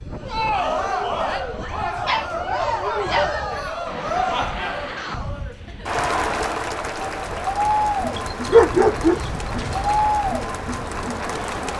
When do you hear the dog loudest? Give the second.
9 s.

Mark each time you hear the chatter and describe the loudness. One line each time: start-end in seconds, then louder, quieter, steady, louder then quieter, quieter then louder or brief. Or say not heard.
0.1-11.7 steady.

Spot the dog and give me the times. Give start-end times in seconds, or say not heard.
1.9-3.5, 8.2-9.9.